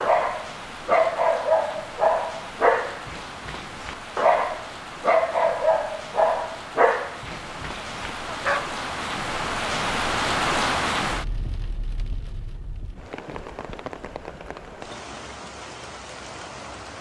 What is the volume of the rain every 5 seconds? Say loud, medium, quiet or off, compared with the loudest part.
medium, loud, loud, medium.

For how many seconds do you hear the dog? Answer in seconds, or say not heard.
9 s.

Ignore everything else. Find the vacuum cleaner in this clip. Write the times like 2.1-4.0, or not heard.
not heard.